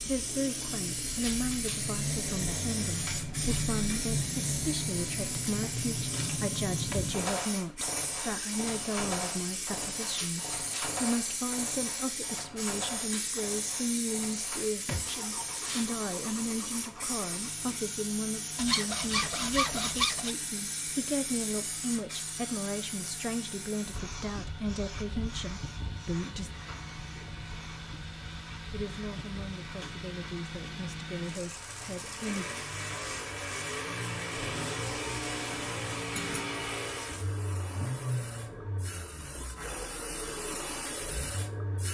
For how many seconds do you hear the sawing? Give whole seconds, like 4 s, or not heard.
2 s.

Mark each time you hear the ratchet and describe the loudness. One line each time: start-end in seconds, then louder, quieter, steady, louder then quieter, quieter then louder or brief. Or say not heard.
not heard.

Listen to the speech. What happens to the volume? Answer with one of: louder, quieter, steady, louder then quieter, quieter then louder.
steady.